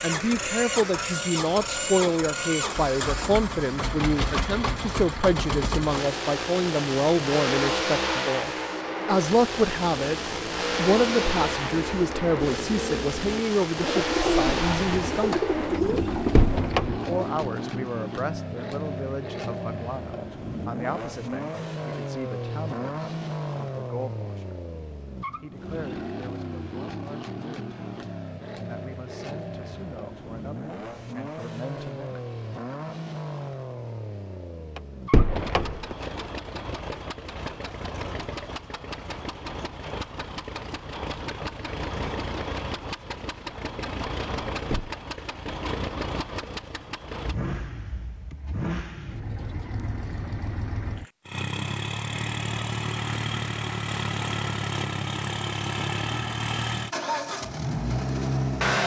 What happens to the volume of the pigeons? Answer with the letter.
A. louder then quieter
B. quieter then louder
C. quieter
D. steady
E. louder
E.